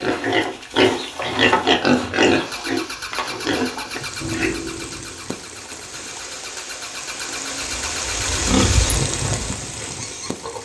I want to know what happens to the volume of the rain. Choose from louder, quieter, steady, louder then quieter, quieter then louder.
louder.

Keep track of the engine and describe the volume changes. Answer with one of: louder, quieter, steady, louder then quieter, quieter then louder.
quieter then louder.